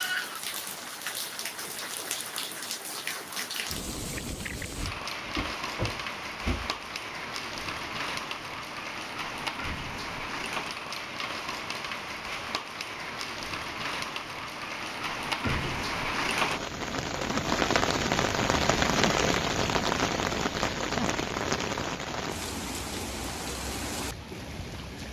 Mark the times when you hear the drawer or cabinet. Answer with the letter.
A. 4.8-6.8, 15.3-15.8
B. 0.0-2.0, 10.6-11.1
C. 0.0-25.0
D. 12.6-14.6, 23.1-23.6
A.